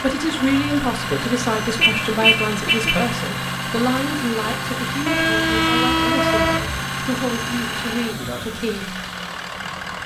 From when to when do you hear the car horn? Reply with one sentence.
The car horn can be heard from 1.8 to 3.1 s and from 5.0 to 6.8 s.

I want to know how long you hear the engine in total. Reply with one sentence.
You can hear the engine for 10 seconds altogether.